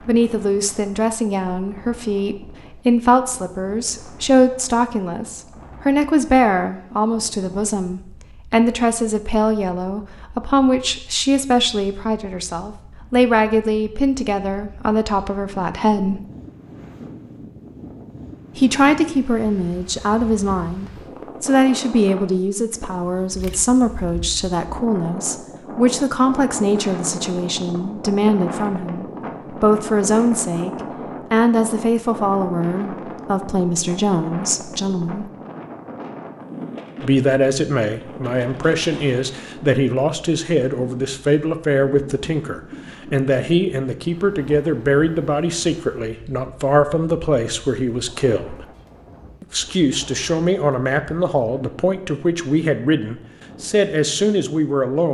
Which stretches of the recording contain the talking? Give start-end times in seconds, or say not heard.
0.1-16.2, 18.6-30.7, 31.3-35.2, 37.0-48.6, 49.4-55.0.